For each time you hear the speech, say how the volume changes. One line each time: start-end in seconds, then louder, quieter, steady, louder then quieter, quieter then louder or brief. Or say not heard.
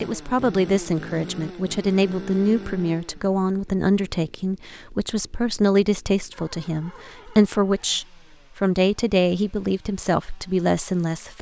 0.0-11.3 steady.